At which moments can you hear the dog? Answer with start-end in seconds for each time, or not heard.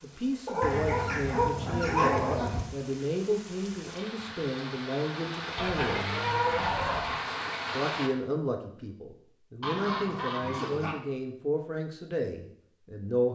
0.5-2.4.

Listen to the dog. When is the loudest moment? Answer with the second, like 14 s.
2 s.